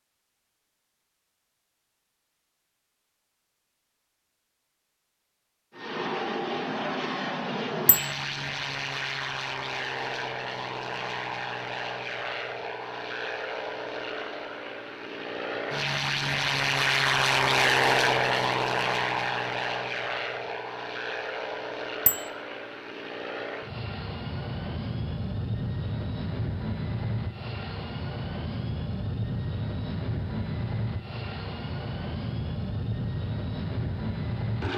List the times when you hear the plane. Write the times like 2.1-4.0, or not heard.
5.7-34.7.